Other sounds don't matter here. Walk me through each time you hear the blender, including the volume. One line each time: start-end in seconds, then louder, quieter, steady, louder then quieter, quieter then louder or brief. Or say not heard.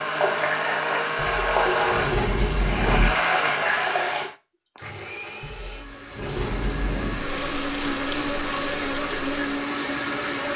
0.0-10.5 quieter then louder.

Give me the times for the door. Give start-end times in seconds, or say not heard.
1.1-3.1, 5.4-7.2.